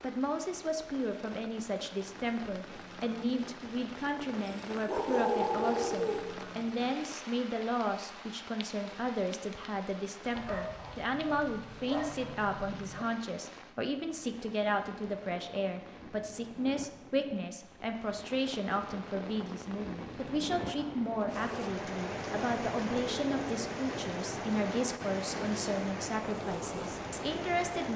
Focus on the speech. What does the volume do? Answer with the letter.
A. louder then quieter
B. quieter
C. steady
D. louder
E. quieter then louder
C.